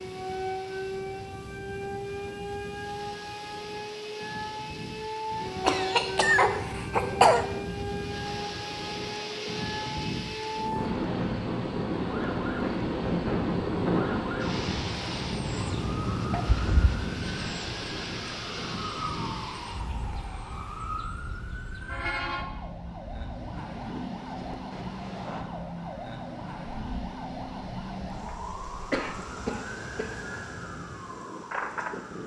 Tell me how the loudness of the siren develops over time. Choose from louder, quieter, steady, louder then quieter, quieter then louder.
steady.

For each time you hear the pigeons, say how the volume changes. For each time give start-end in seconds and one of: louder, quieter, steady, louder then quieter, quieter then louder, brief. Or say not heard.
not heard.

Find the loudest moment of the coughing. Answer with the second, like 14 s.
7 s.